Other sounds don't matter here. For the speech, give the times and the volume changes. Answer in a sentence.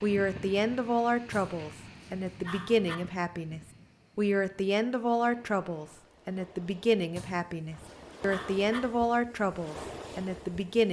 You can hear the speech from 0.0 to 10.8 s, at a steady volume.